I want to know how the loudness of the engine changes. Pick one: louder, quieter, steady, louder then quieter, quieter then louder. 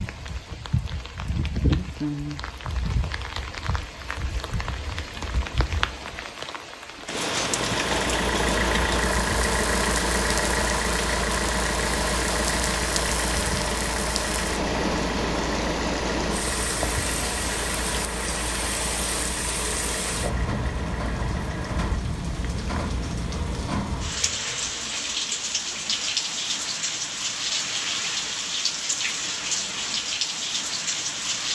quieter.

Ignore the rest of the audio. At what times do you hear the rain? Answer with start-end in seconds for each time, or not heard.
0.0-31.5.